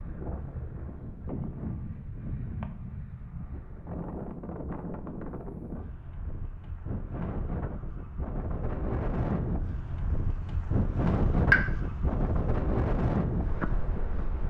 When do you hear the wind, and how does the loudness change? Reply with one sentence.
You can hear the wind from 0.0 to 14.4 s, getting louder.